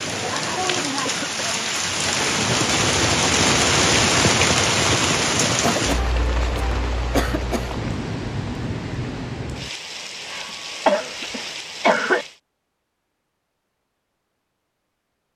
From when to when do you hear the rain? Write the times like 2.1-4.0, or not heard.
0.0-12.4.